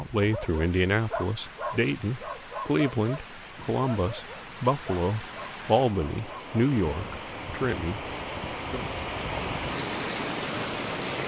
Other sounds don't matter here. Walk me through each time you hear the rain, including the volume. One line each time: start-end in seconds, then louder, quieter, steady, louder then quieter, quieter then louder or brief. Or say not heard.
0.0-11.2 louder.